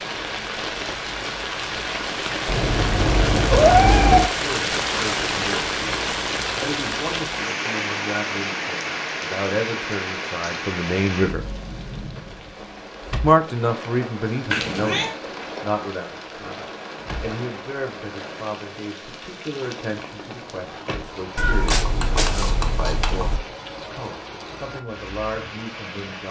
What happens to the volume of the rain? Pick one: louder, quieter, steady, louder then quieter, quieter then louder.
quieter.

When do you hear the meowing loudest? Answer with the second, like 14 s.
4 s.